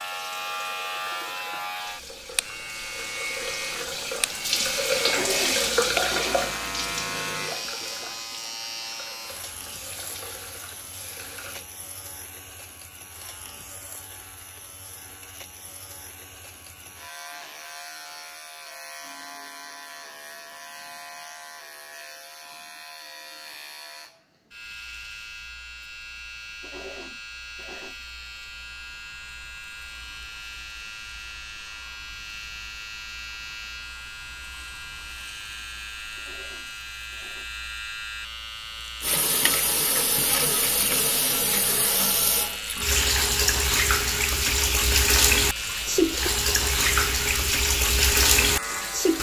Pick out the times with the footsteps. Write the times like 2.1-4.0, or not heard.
not heard.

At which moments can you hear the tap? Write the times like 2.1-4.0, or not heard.
0.0-11.7, 39.0-49.1.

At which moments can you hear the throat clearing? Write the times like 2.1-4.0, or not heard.
5.0-6.5, 26.6-27.9, 36.1-37.5.